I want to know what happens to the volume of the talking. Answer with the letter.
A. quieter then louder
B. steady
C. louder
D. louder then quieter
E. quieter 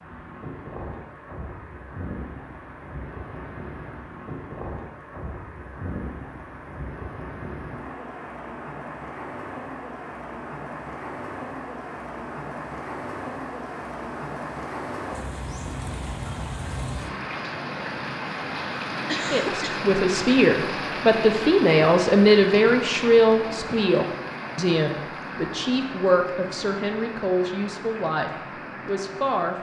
E.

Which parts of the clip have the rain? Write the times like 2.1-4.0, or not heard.
0.0-29.5.